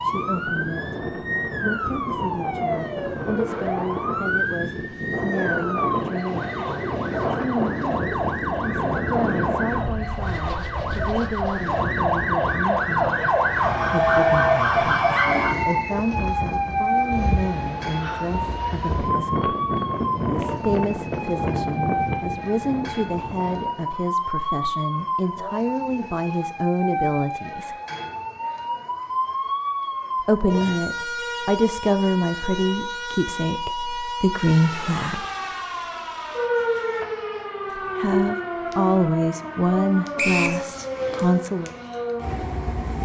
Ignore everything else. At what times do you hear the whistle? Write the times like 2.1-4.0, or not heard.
15.1-15.9, 40.1-40.6.